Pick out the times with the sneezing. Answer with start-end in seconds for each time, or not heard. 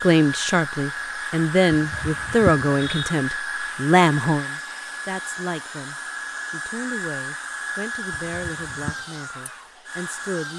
1.7-3.1, 8.1-9.0.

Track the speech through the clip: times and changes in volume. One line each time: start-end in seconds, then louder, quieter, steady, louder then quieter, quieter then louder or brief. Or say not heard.
0.0-10.5 quieter.